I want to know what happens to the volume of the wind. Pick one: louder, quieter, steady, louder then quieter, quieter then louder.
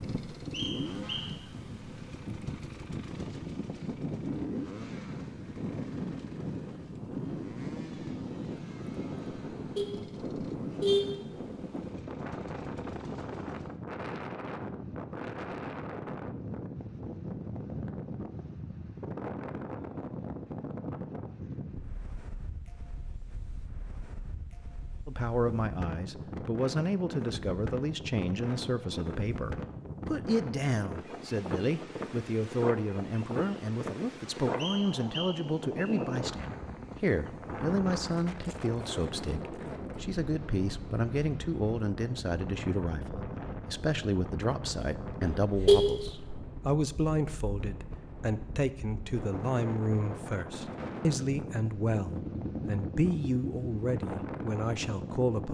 steady.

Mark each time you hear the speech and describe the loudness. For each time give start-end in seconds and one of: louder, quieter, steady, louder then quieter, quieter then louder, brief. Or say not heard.
25.1-55.4 steady.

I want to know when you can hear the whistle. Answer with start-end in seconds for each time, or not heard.
0.5-1.3, 34.5-36.0.